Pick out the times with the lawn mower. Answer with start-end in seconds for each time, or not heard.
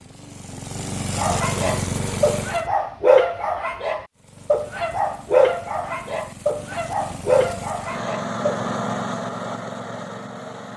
0.0-2.7, 4.2-10.7.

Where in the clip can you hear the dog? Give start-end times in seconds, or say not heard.
1.1-8.6.